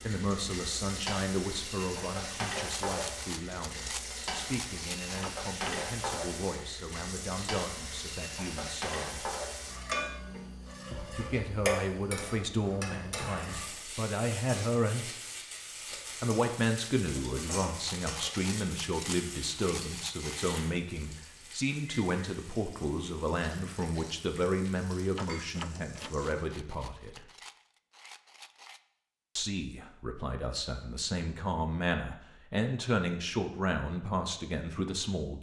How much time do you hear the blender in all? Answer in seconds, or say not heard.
not heard.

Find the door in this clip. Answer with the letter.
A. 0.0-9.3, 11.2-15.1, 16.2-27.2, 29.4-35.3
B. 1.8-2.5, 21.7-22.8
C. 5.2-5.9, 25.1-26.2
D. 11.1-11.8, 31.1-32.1
C.